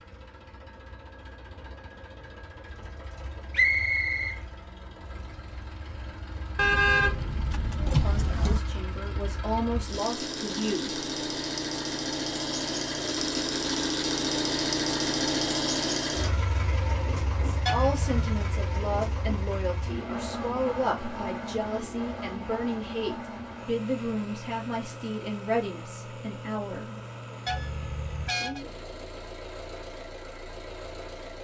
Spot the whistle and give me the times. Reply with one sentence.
The whistle can be heard from 3.5 to 4.4 s.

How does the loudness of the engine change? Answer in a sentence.
The loudness of the engine goes up, then down.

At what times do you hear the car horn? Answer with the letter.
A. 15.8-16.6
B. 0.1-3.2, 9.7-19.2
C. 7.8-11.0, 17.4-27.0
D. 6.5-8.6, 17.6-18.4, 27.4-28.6
D.